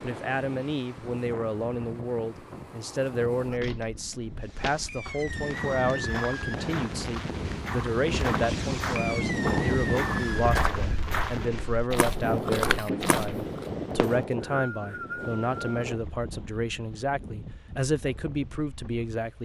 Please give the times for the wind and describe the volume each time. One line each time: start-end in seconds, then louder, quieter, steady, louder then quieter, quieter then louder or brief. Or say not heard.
0.0-19.4 louder then quieter.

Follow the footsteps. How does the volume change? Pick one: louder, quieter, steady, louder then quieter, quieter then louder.
louder.